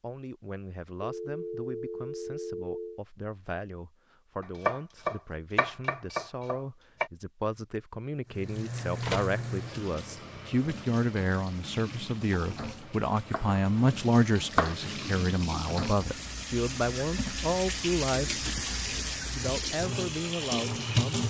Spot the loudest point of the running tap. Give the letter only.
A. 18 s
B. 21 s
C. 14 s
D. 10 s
B.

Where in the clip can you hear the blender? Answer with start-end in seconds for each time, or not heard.
not heard.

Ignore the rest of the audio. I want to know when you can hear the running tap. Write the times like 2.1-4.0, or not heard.
8.2-21.2.